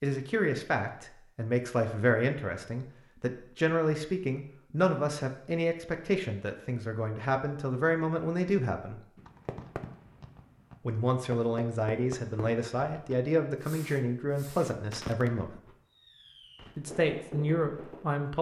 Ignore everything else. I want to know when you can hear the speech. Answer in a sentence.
The speech can be heard from 0.0 to 9.0 s, from 10.8 to 15.6 s and from 16.8 to 18.3 s.